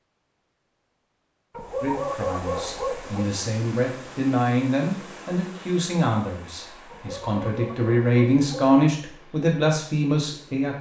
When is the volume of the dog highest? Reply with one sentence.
The loudest moment of the dog is at 2 seconds.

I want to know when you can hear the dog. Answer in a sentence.
The dog can be heard from 1.5 to 3.3 s and from 6.9 to 8.7 s.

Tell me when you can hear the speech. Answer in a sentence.
You can hear the speech from 1.8 to 10.7 s.